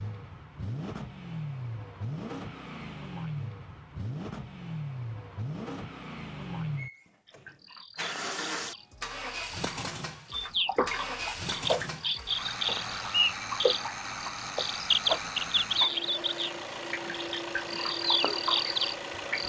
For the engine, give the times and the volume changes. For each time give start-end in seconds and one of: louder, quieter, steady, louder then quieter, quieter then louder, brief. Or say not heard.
0.0-19.4 steady.